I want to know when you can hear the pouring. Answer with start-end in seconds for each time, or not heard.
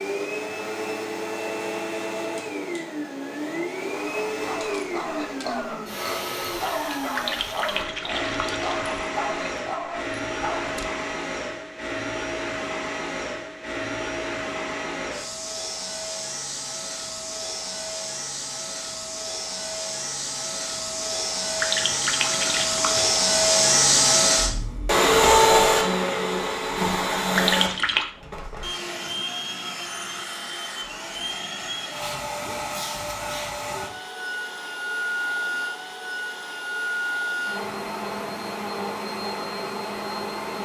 7.2-8.8, 21.6-23.2, 27.4-28.1.